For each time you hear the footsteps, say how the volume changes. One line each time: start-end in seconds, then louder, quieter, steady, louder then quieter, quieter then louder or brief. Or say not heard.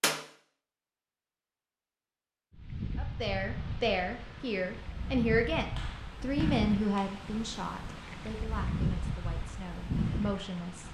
not heard.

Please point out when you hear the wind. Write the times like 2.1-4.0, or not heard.
2.5-10.9.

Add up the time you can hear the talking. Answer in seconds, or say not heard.
8 s.